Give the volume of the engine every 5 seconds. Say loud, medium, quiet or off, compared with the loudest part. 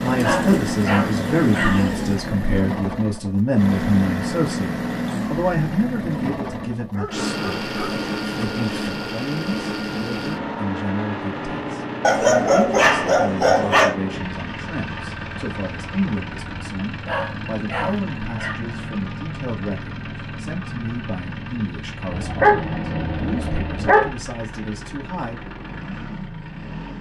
loud, loud, loud, medium, medium, medium.